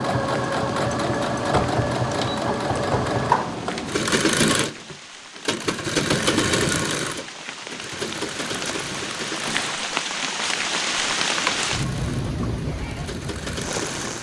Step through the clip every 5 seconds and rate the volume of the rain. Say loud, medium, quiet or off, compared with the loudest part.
quiet, medium, loud.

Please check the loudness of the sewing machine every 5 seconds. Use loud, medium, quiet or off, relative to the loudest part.
loud, loud, quiet.